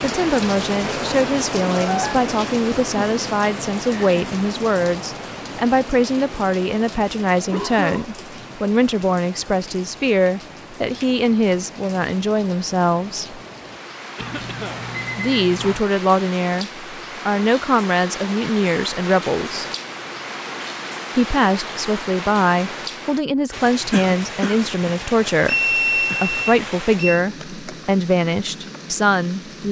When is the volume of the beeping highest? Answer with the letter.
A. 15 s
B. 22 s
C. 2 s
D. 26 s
D.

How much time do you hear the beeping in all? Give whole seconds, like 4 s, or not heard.
5 s.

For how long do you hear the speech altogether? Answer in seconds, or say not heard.
26 s.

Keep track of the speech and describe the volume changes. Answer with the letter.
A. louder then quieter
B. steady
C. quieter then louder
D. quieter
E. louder
B.